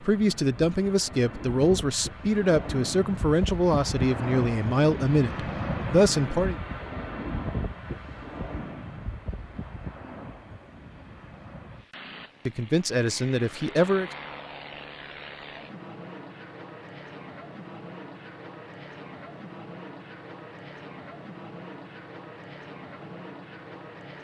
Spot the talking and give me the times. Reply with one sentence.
You can hear the talking from 0.0 to 6.6 s and from 12.4 to 14.1 s.